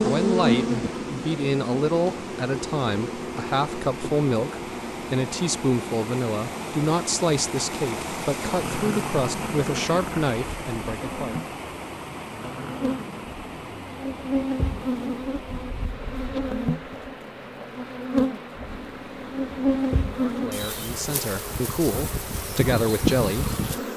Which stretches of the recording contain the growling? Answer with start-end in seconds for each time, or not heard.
8.5-10.2, 12.2-13.4.